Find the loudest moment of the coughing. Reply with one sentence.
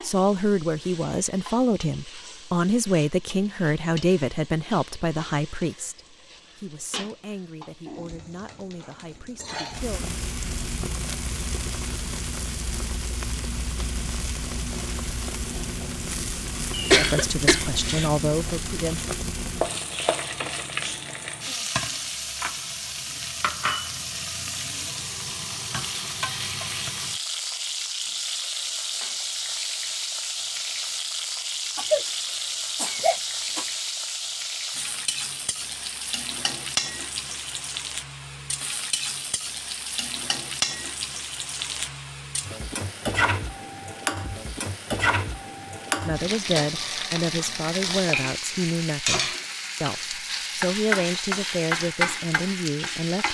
The loudest moment of the coughing is at 17 seconds.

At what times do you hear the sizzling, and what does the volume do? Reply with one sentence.
You can hear the sizzling from 0.0 to 53.3 s, getting louder.